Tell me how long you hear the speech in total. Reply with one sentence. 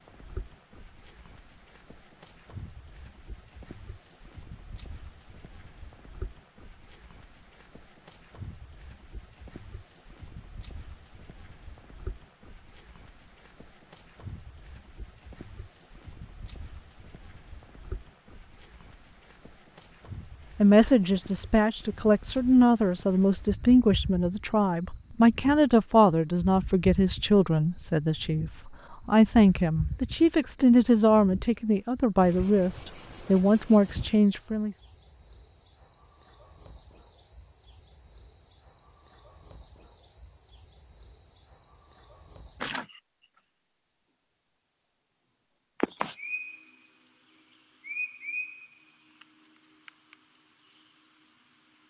The speech can be heard for 14 seconds in total.